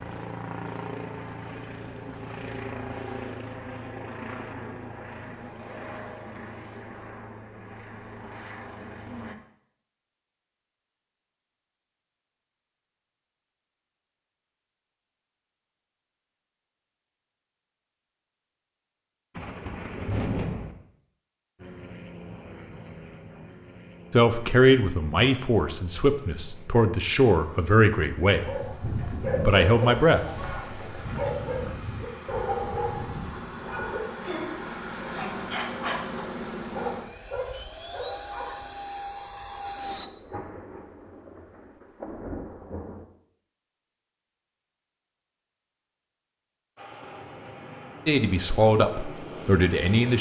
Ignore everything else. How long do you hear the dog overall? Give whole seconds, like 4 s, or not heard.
10 s.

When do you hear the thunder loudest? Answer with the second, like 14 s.
20 s.